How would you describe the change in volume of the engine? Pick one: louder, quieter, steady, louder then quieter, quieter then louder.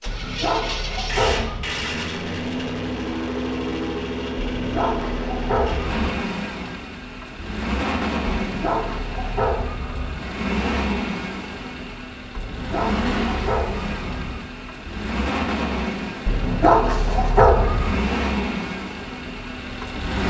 steady.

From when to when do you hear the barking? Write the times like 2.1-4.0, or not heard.
0.1-1.8, 4.3-6.2, 8.3-10.3, 12.3-14.4, 16.2-18.1.